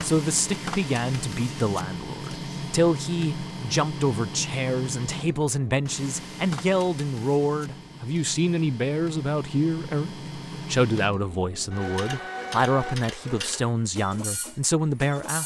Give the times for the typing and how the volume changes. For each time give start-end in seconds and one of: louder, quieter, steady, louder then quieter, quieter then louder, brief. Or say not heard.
not heard.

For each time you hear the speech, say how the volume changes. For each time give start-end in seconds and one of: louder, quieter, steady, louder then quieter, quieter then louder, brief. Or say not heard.
0.0-15.4 steady.